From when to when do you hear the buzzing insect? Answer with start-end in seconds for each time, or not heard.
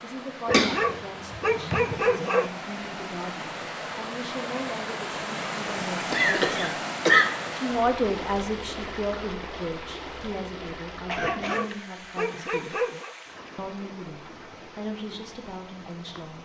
not heard.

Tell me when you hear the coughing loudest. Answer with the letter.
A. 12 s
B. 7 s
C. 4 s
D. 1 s
B.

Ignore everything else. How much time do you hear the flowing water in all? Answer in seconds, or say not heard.
16 s.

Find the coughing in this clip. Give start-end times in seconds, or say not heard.
0.5-2.0, 6.1-7.2, 11.1-11.7.